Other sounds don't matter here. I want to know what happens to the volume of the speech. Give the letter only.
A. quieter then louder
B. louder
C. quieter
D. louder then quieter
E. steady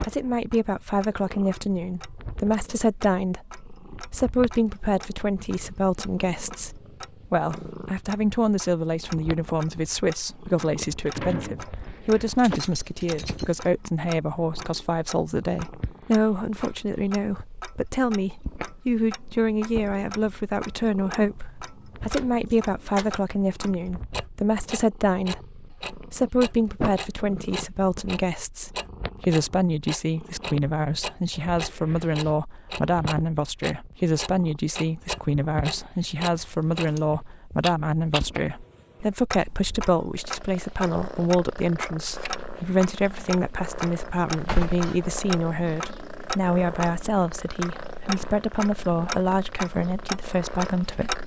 E.